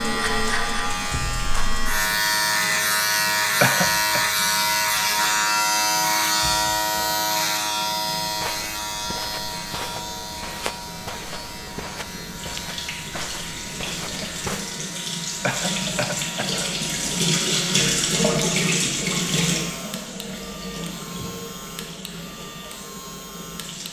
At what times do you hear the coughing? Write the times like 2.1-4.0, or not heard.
3.6-4.2, 15.4-16.6.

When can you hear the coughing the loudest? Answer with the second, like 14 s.
4 s.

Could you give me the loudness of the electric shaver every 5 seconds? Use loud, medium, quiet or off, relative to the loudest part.
loud, loud, quiet, quiet, quiet.